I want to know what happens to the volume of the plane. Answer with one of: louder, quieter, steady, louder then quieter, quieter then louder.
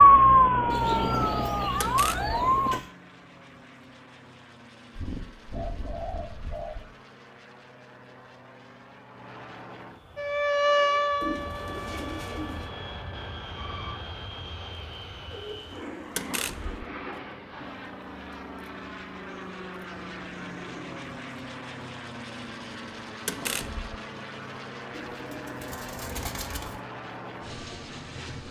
louder.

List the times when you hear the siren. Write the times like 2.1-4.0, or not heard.
0.0-2.8, 10.2-14.0.